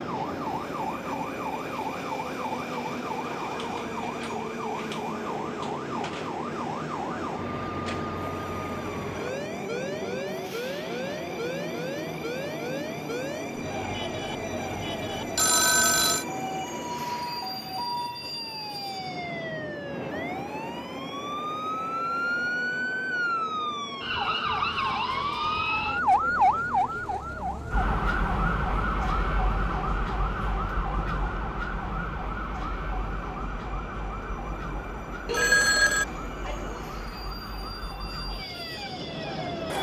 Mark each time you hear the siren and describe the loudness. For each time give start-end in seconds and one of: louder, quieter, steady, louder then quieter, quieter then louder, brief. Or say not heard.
0.0-39.7 louder then quieter.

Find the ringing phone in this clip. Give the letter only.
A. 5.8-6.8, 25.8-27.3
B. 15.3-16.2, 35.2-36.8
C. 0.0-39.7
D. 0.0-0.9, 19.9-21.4
B.